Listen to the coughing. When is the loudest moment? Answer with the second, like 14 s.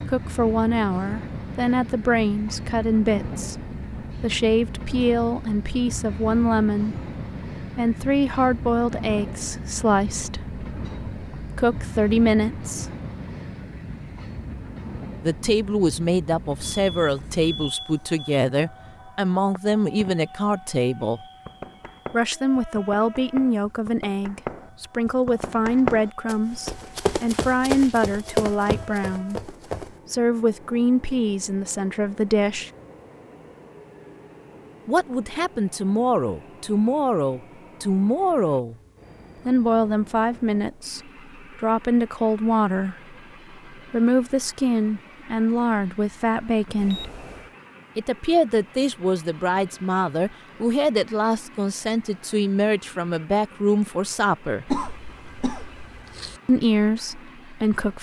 55 s.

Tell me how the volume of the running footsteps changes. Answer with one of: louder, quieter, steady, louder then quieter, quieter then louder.
louder.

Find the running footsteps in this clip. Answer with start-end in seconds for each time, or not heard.
21.3-30.0.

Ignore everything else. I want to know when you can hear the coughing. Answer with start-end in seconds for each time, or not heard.
54.6-56.4.